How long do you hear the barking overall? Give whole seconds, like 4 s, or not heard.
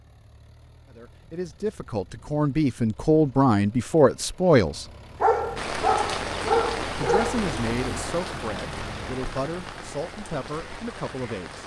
2 s.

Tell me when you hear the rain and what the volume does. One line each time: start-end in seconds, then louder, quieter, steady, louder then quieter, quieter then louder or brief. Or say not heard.
5.5-11.6 quieter.